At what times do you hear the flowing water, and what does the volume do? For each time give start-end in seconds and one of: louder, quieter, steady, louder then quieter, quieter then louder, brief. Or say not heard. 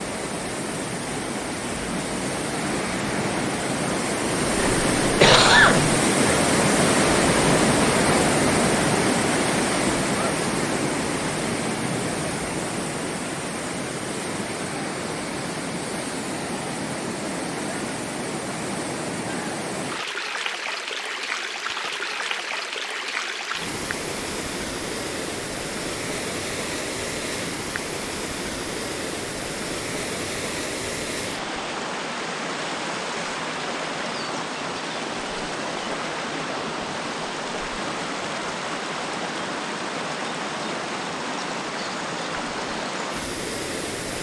0.0-44.1 quieter.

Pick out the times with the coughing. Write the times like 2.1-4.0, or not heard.
4.5-6.0.